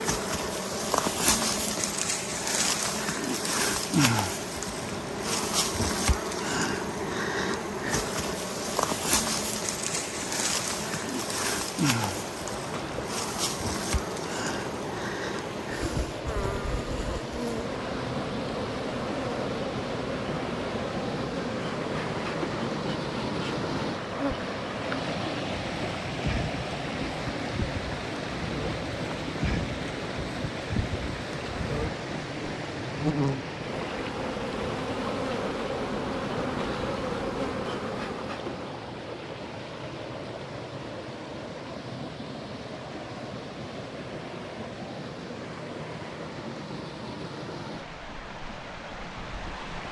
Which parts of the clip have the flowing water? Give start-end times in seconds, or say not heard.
0.2-49.8.